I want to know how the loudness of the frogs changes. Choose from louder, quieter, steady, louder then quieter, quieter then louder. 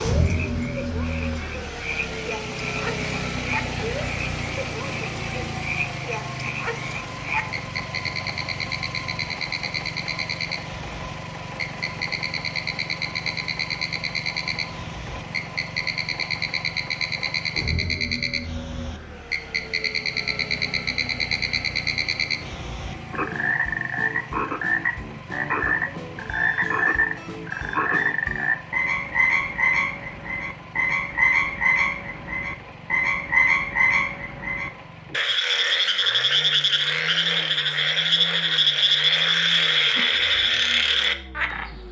louder.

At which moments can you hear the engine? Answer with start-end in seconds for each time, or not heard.
0.0-41.8.